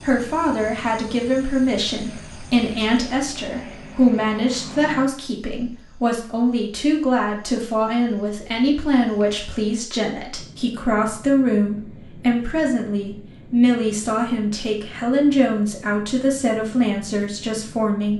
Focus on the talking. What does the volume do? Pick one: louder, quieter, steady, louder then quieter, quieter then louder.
steady.